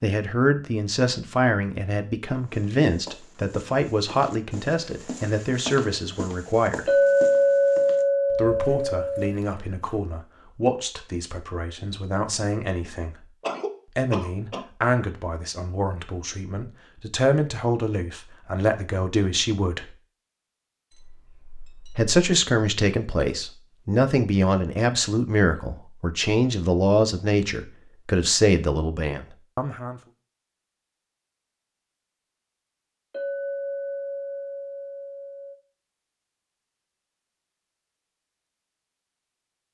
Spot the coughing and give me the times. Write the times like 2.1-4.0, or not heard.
13.4-14.7.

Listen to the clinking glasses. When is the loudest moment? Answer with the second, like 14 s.
7 s.